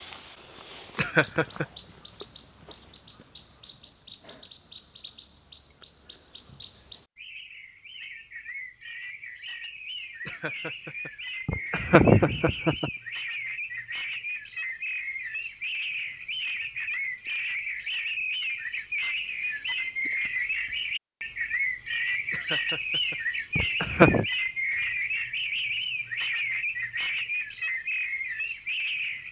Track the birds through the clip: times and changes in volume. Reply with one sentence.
You can hear the birds from 0.0 to 29.2 s, getting louder.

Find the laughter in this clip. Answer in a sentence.
The laughter can be heard from 0.9 to 1.6 s, from 10.2 to 12.9 s and from 22.3 to 24.2 s.